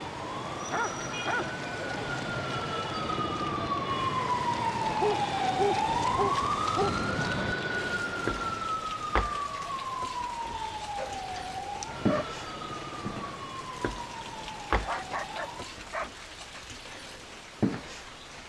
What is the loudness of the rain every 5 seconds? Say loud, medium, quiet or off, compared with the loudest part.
medium, loud, loud, loud.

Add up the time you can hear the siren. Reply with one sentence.
You can hear the siren for 16 seconds altogether.